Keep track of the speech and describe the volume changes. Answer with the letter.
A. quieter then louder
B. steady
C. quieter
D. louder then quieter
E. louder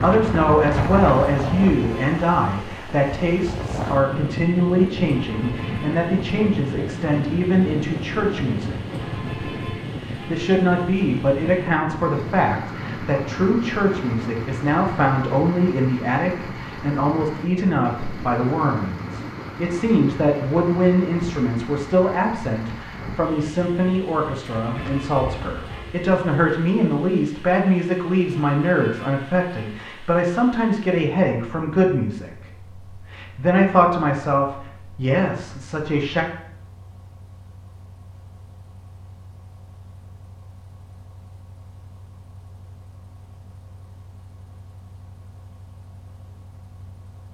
B.